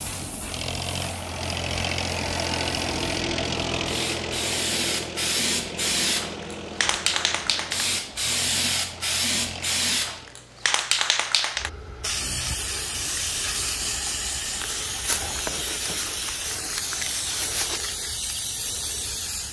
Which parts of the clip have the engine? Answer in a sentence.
The engine can be heard from 0.0 to 10.3 s.